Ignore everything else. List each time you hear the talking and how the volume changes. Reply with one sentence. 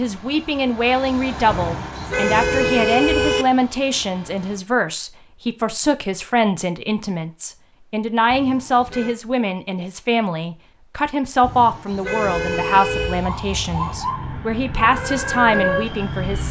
You can hear the talking from 0.0 to 16.4 s, at a steady volume.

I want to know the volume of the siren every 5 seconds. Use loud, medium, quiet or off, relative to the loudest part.
off, off, medium, loud.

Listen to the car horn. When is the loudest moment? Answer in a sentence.
The loudest moment of the car horn is at 3 seconds.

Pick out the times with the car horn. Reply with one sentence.
You can hear the car horn from 1.5 to 3.5 s, from 8.3 to 9.2 s and from 11.4 to 13.2 s.